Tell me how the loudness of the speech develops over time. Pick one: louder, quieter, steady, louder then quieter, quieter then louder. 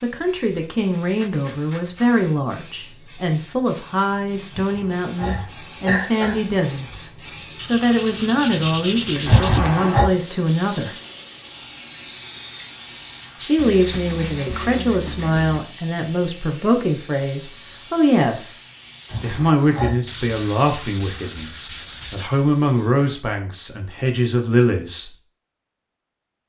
steady.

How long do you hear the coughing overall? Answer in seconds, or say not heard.
4 s.